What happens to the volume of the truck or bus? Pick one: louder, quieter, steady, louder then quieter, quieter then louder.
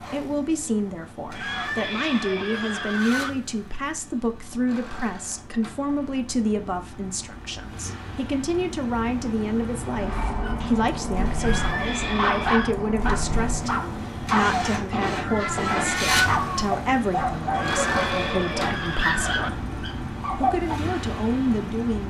louder.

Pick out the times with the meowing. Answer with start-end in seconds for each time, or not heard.
15.2-16.7.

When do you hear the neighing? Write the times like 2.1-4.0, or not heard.
1.4-3.3, 11.3-12.8, 17.5-19.5.